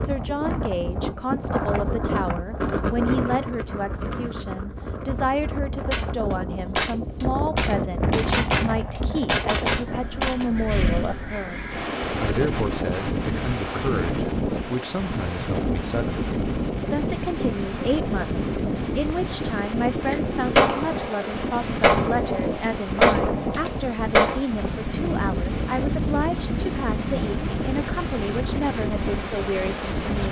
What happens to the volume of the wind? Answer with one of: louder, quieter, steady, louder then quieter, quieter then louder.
steady.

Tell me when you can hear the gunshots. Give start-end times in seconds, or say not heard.
5.9-10.4, 20.1-24.4.